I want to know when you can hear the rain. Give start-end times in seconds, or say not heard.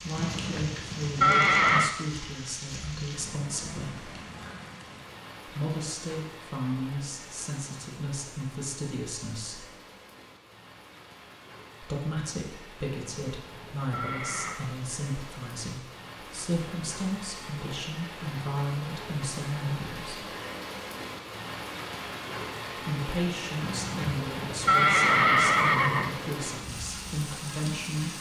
0.0-28.1.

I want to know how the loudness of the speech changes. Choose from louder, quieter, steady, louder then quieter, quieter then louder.
steady.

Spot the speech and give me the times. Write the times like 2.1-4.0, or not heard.
0.0-4.1, 5.5-9.7, 11.8-20.3, 22.8-28.1.